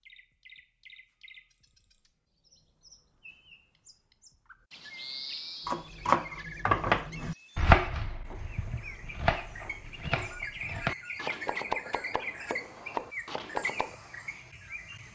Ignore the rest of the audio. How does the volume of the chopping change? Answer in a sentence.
The loudness of the chopping goes down.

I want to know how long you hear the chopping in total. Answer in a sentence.
You can hear the chopping for 8 seconds altogether.